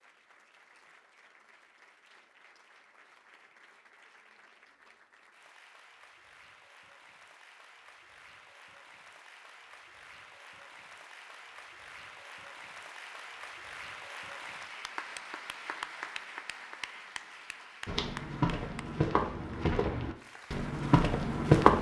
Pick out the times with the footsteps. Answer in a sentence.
You can hear the footsteps from 17.9 to 21.7 s.